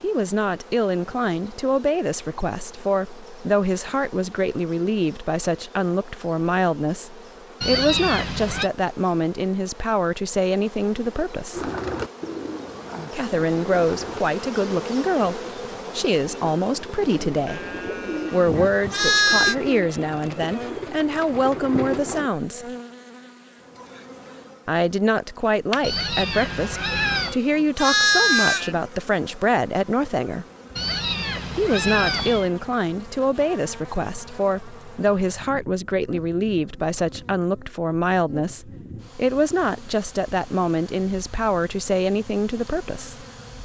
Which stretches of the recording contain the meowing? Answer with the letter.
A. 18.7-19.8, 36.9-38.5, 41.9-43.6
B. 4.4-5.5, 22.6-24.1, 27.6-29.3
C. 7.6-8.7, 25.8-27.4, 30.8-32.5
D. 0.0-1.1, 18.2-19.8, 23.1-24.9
C.